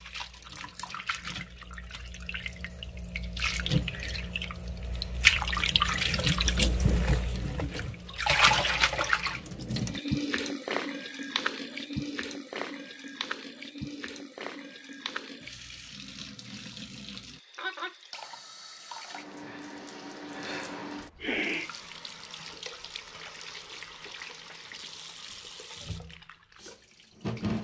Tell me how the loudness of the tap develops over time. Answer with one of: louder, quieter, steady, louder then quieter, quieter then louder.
quieter.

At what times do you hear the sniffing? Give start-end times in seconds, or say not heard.
21.2-21.7.